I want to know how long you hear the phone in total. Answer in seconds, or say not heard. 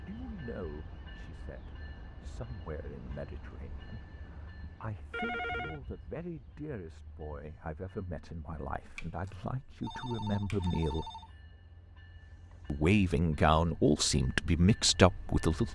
3 s.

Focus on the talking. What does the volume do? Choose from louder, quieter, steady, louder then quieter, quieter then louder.
louder.